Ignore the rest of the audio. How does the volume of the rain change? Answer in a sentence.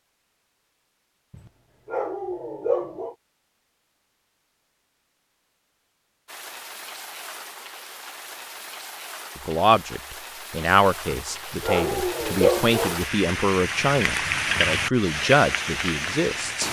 The loudness of the rain goes up.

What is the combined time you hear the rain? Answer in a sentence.
You can hear the rain for 10 seconds altogether.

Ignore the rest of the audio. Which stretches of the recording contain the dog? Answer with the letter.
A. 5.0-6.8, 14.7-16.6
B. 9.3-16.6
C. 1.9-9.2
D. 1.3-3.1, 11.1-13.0
D.